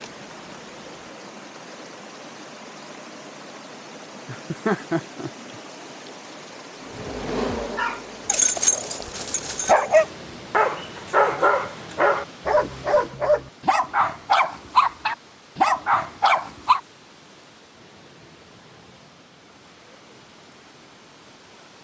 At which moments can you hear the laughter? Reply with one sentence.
You can hear the laughter from 4.2 to 5.5 s.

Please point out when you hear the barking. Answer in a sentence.
The barking can be heard from 7.8 to 16.8 s.